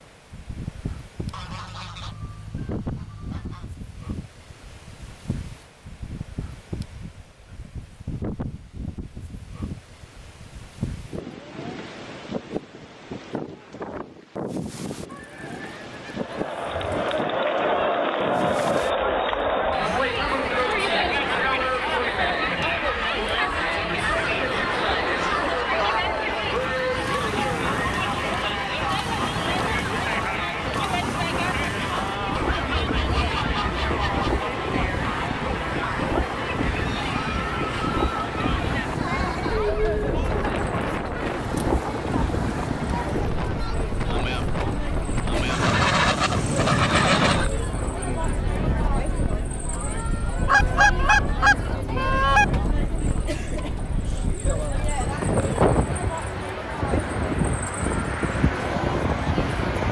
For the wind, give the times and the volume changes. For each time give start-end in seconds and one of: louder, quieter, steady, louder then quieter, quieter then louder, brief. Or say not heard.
0.0-59.8 louder.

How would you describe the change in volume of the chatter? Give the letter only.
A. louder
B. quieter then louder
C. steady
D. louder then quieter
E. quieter
E.